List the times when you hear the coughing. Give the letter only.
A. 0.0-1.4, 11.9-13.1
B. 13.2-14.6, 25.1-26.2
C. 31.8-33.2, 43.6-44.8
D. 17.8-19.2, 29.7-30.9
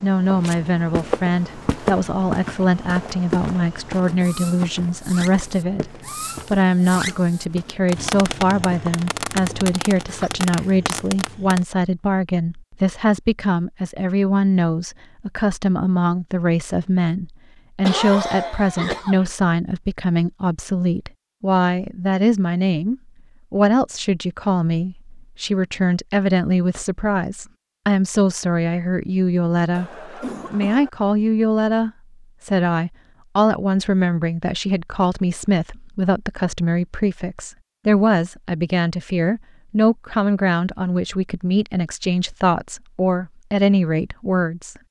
D.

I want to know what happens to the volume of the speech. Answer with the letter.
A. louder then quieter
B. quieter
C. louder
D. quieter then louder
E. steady
E.